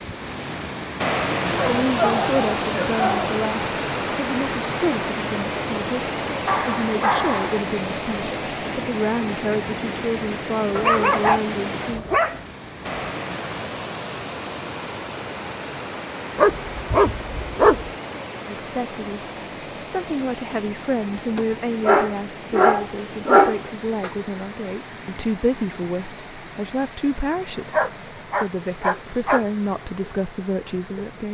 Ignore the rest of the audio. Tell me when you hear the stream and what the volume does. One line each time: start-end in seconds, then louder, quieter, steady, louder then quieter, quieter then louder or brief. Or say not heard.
0.0-31.3 quieter.